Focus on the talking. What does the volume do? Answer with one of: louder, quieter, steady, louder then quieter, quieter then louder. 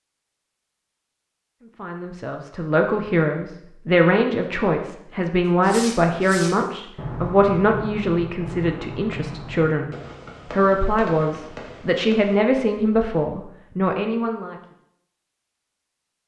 steady.